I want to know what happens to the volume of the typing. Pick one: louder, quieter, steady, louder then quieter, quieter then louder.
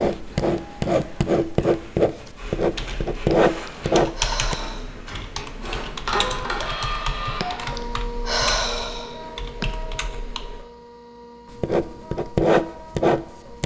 quieter.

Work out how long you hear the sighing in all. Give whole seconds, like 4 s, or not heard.
4 s.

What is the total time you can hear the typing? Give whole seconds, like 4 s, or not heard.
8 s.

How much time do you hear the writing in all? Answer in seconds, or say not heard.
7 s.